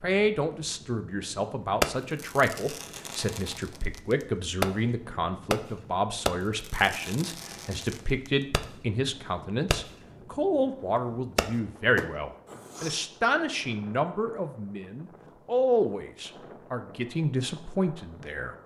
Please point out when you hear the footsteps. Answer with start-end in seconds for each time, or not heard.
not heard.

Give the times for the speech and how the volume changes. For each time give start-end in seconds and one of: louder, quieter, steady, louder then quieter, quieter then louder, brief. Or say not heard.
0.0-18.6 steady.